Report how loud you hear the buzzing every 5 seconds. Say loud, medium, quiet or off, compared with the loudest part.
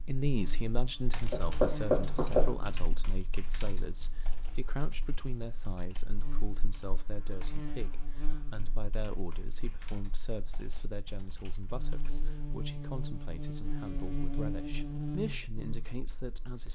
medium, medium, loud, loud.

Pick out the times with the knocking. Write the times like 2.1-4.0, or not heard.
1.3-2.5.